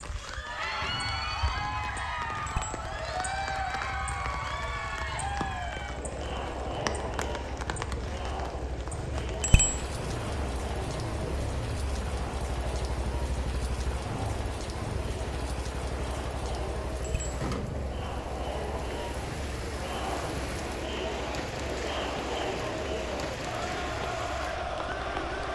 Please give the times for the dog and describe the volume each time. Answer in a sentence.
You can't hear the dog here.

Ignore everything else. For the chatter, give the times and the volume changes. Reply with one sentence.
The chatter can be heard from 0.1 to 25.5 s, getting quieter then louder.